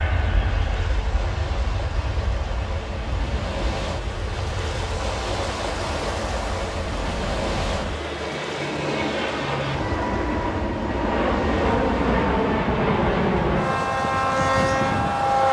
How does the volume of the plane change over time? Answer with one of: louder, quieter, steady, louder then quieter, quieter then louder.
louder.